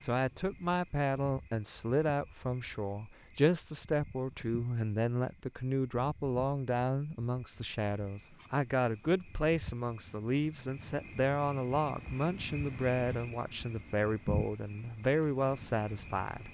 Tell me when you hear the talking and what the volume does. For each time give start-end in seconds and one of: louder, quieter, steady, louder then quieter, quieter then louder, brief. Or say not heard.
0.0-16.4 steady.